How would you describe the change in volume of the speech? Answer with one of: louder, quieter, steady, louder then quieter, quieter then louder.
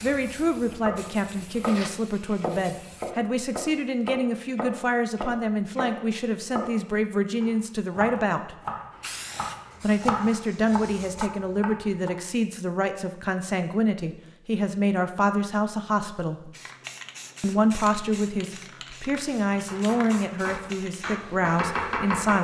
steady.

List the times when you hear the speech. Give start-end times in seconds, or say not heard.
0.0-8.6, 9.8-16.5, 17.4-22.3.